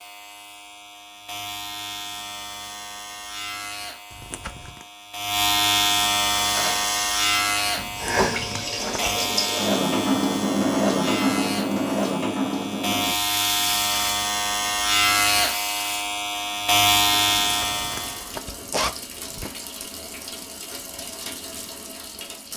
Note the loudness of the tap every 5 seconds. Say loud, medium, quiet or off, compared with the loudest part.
off, loud, loud, quiet, quiet.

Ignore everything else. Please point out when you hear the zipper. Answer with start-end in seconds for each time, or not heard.
4.1-4.8, 7.8-9.2, 17.4-19.6.